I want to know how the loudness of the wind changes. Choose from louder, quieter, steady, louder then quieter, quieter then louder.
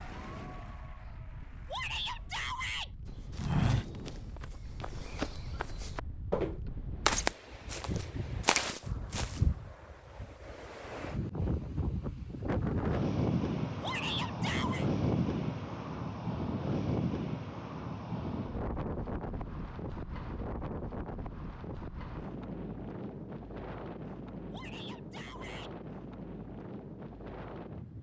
louder then quieter.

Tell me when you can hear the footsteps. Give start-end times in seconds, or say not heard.
3.4-9.4.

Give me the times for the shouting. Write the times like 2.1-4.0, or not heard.
1.6-2.9, 13.8-14.8, 24.5-25.7.